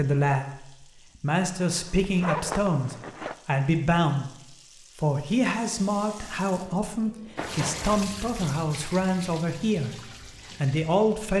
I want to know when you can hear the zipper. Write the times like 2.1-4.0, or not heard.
1.6-3.4, 7.3-8.1.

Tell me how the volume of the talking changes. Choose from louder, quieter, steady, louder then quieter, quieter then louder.
steady.